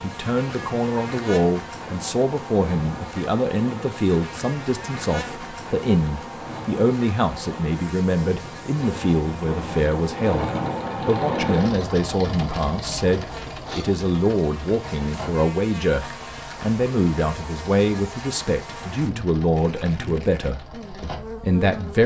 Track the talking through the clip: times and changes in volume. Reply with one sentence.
The talking can be heard from 0.0 to 22.0 s, at a steady volume.